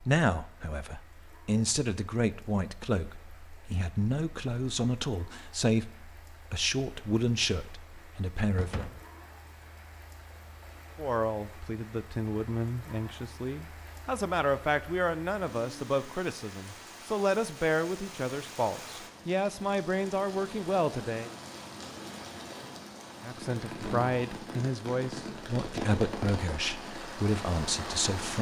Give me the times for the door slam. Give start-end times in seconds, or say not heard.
8.6-9.1.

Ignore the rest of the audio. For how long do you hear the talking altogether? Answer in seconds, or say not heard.
24 s.